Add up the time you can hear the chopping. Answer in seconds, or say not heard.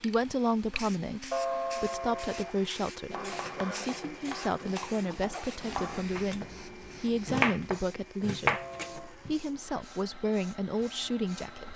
6 s.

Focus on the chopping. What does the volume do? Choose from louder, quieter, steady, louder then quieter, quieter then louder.
louder.